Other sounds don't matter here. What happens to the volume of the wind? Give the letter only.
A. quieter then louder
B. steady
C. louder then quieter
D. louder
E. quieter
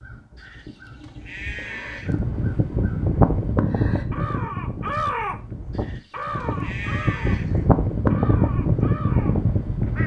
A.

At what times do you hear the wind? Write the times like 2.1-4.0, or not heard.
2.0-10.0.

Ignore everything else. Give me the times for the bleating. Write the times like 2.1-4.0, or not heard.
0.3-2.1, 5.7-7.7.